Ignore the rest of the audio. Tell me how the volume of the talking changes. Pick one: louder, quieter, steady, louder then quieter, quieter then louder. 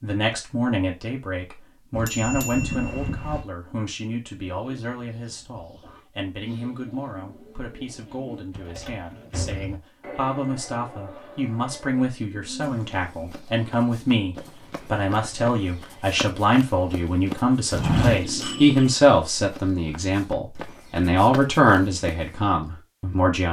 quieter then louder.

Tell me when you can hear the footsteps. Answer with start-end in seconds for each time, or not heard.
12.7-22.2.